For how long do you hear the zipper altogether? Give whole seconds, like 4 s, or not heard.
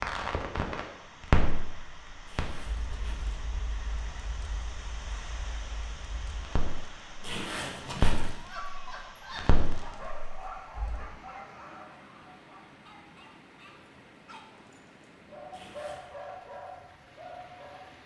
3 s.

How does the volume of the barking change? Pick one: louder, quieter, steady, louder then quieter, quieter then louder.
quieter then louder.